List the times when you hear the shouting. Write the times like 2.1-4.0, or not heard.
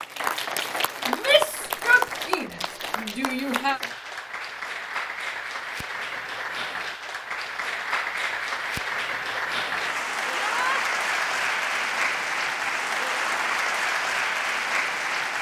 1.1-3.8, 10.3-10.8.